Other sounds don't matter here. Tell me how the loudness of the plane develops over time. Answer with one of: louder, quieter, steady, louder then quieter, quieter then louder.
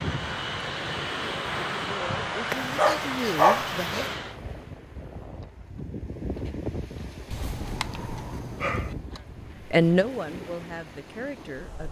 steady.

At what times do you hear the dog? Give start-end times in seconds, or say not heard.
2.5-4.2, 7.3-8.9.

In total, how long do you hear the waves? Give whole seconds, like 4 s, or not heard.
12 s.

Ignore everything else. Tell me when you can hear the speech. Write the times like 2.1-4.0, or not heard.
1.8-4.0, 9.7-11.8.